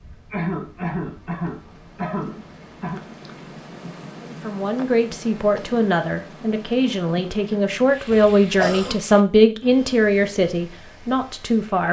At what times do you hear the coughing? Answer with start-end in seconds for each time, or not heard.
0.3-3.0, 8.1-8.9.